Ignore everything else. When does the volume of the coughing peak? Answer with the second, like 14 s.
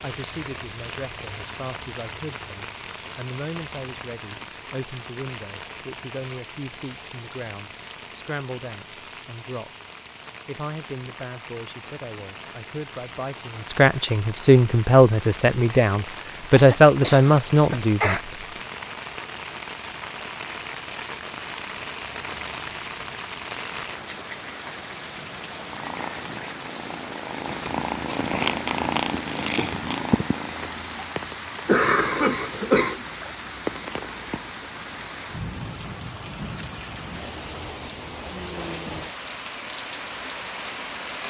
32 s.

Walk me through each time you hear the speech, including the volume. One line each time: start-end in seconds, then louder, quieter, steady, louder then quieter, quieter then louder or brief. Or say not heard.
0.0-9.7 steady
10.4-18.2 louder.